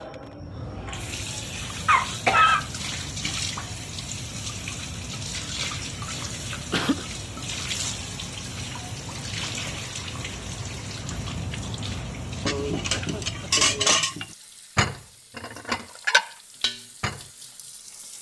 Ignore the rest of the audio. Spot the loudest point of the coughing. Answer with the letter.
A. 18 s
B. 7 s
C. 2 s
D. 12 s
C.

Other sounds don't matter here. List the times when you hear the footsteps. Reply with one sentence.
You can't hear the footsteps here.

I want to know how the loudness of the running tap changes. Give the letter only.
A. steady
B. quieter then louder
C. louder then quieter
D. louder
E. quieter
E.